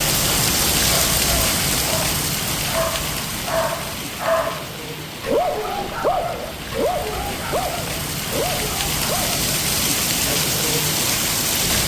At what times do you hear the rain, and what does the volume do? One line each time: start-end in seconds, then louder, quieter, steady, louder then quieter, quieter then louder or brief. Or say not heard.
0.0-11.8 quieter then louder.